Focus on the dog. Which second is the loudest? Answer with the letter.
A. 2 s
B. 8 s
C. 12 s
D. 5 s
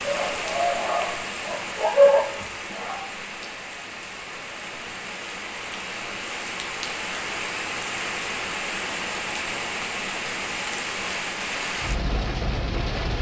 A.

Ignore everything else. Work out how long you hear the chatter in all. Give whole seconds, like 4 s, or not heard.
not heard.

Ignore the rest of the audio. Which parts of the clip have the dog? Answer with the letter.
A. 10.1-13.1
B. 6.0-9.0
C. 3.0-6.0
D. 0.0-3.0
D.